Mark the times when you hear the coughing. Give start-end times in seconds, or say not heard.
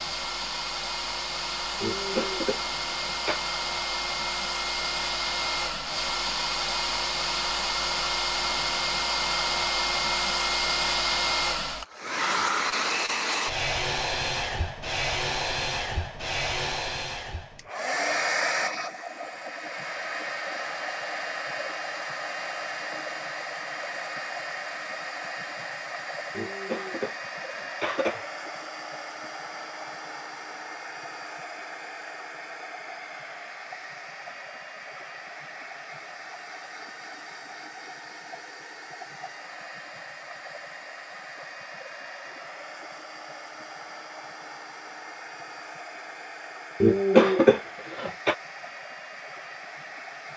1.8-3.4, 26.4-28.2, 46.8-48.4.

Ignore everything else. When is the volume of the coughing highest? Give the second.
47 s.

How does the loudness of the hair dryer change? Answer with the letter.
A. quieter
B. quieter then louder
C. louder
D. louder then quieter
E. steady
A.